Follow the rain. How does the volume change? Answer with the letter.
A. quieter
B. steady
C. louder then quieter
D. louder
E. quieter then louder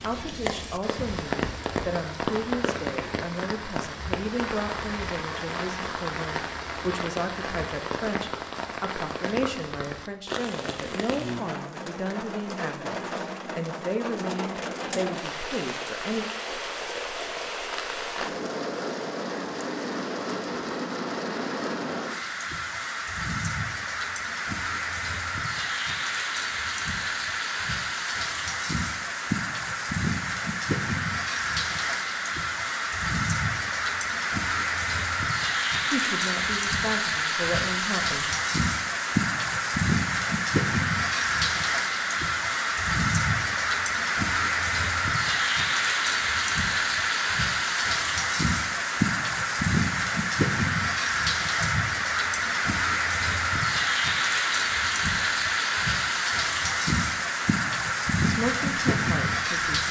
D.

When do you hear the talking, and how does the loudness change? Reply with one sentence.
The talking can be heard from 0.0 to 16.2 s, at a steady volume; briefly from 35.9 to 38.3 s; and briefly from 58.2 to 59.8 s.